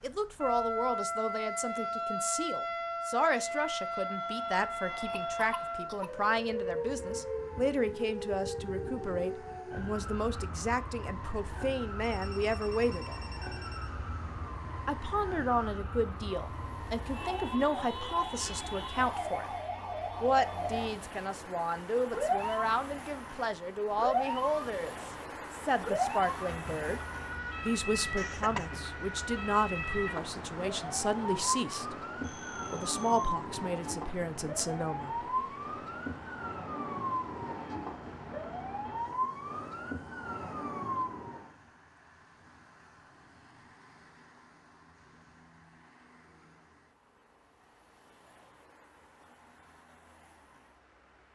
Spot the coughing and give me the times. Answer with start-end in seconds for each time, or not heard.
5.3-6.2, 28.1-28.9.